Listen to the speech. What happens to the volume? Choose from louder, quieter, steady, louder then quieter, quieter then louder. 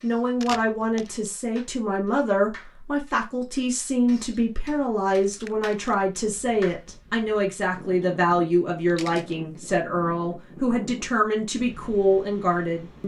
steady.